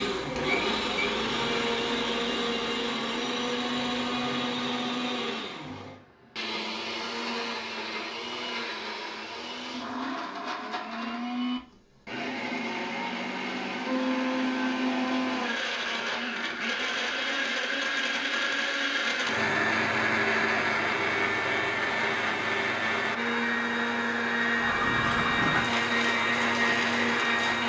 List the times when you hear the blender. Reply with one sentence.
You can hear the blender from 0.0 to 27.6 s.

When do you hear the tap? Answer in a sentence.
The tap can be heard from 24.6 to 27.6 s.